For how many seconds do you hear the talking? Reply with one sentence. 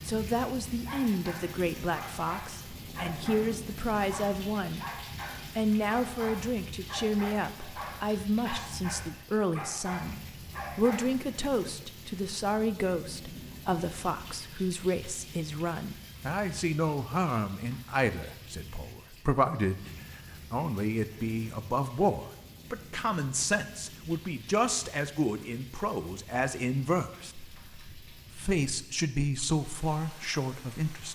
The talking can be heard for 30 seconds in total.